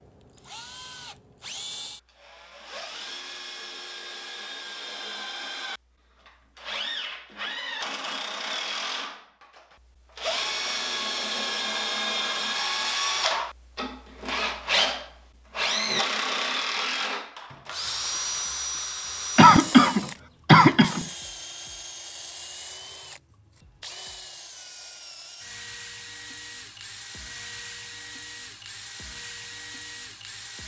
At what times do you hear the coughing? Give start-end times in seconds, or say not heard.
19.4-21.1.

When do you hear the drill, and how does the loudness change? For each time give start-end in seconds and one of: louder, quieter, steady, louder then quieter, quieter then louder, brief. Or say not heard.
0.0-30.6 louder then quieter.